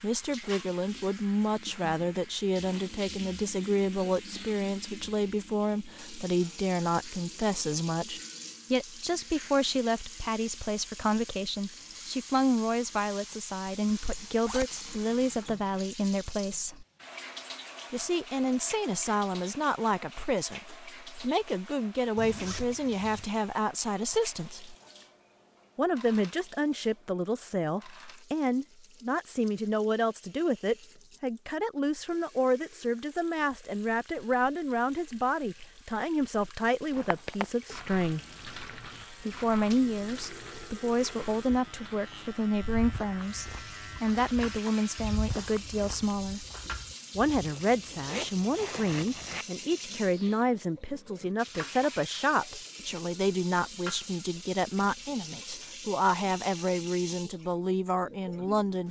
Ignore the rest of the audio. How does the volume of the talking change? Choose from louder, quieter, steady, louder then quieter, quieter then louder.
steady.